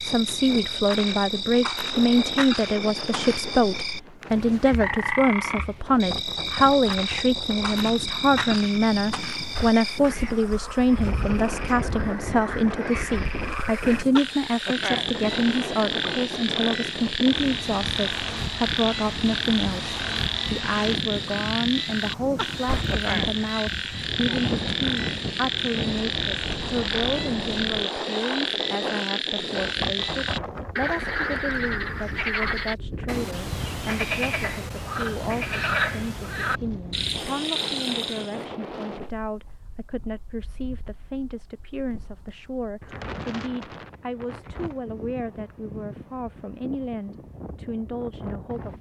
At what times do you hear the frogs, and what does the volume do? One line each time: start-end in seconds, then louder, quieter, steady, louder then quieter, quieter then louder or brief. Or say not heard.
0.0-38.5 steady.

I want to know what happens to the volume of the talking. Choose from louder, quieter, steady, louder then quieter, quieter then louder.
quieter.